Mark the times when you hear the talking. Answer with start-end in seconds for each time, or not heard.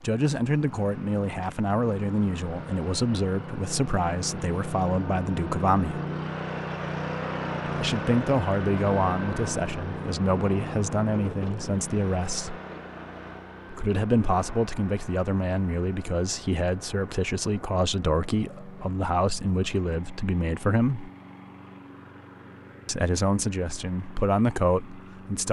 0.0-6.0, 7.8-12.6, 13.7-21.1, 22.9-25.4.